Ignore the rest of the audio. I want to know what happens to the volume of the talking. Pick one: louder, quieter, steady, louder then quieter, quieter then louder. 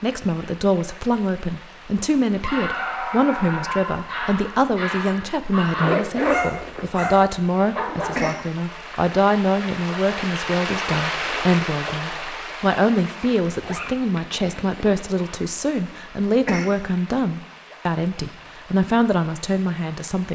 steady.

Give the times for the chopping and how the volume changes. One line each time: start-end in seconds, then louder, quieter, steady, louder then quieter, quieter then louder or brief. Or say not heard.
not heard.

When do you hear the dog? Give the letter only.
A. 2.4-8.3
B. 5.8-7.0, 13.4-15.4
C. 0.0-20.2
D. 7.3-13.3
A.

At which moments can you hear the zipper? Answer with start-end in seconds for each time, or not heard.
5.8-7.0, 13.4-15.4.